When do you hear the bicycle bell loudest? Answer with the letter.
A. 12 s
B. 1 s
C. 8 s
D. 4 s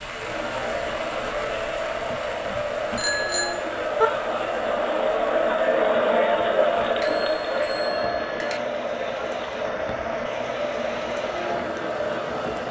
D.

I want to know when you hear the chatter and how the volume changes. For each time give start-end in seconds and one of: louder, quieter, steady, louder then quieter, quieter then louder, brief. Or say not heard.
0.0-12.6 louder then quieter.